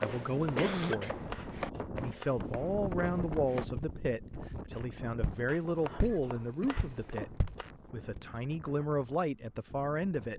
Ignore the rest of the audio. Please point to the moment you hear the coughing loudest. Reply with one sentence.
The volume of the coughing peaks at 1 second.